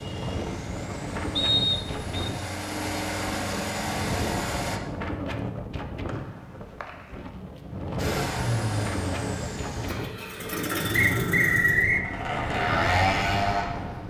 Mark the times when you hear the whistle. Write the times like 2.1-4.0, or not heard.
1.4-2.3, 6.0-7.2, 10.9-12.1.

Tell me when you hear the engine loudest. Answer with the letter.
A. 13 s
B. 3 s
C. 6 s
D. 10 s
A.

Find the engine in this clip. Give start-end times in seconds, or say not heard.
0.0-4.8, 8.0-14.0.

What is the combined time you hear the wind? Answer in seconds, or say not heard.
14 s.